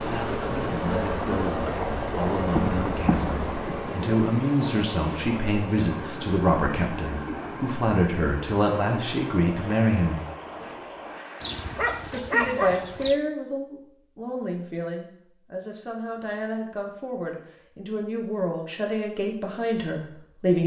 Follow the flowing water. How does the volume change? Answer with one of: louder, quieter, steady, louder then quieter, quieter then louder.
quieter.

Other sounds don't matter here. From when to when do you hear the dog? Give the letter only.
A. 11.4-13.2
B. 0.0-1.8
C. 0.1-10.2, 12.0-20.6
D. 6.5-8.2
A.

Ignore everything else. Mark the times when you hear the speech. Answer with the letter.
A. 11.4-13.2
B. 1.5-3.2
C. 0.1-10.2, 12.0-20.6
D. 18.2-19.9
C.